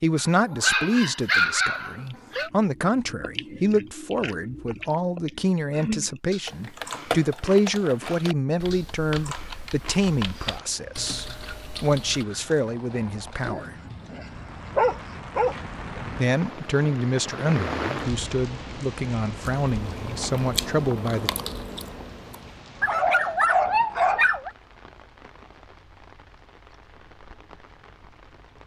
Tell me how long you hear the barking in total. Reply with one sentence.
You can hear the barking for 7 seconds altogether.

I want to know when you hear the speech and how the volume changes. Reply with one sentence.
The speech can be heard from 0.0 to 13.7 s, at a steady volume; and from 16.1 to 21.3 s, at a steady volume.